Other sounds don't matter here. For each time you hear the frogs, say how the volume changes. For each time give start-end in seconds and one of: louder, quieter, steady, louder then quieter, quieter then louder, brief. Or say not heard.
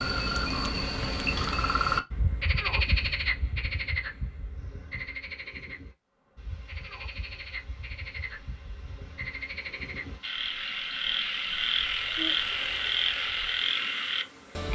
0.0-14.7 quieter then louder.